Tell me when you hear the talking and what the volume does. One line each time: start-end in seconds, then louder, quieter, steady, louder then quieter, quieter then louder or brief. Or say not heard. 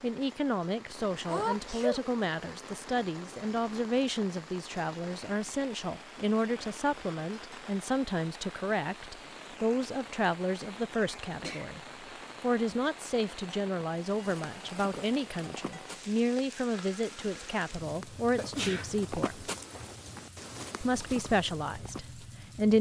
0.0-11.8 steady
12.4-19.5 steady
20.8-22.7 brief.